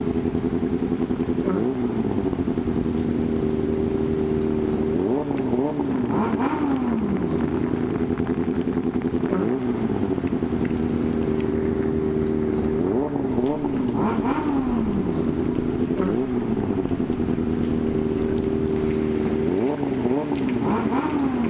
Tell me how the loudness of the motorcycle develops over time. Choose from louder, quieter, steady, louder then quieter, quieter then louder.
steady.